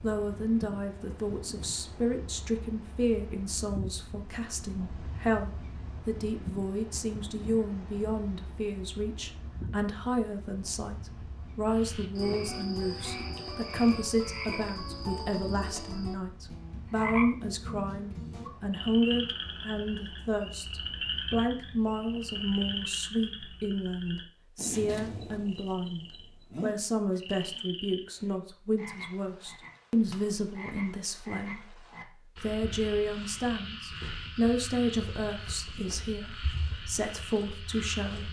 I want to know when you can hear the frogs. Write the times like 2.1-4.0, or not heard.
11.7-38.2.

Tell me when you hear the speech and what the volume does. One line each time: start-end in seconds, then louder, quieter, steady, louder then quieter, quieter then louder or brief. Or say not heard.
0.0-38.2 steady.